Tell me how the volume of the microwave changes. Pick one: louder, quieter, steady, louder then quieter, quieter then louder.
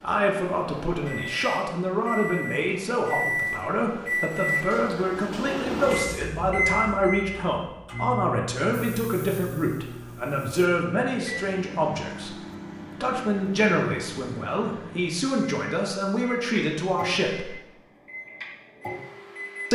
quieter.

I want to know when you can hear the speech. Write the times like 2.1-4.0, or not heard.
0.0-12.3, 13.0-17.6.